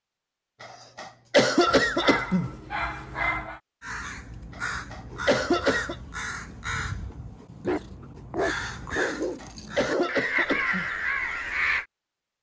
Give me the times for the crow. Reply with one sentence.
You can hear the crow from 3.8 to 11.8 s.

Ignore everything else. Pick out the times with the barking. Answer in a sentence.
You can hear the barking from 1.6 to 3.6 s and from 7.6 to 10.2 s.